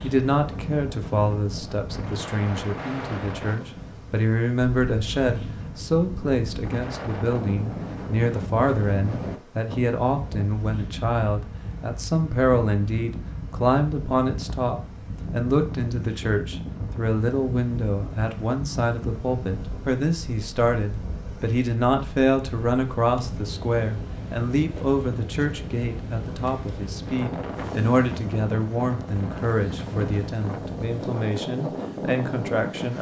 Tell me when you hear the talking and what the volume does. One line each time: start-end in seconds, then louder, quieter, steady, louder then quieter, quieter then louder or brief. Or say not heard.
0.0-32.9 steady.